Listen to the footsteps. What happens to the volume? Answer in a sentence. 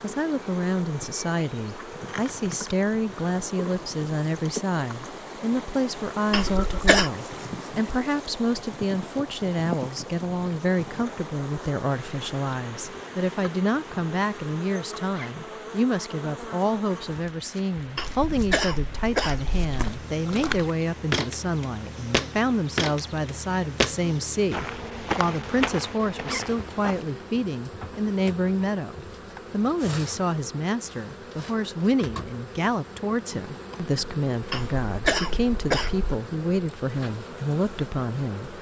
The loudness of the footsteps goes up, then down.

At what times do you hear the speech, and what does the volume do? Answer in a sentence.
The speech can be heard from 0.0 to 38.5 s, at a steady volume.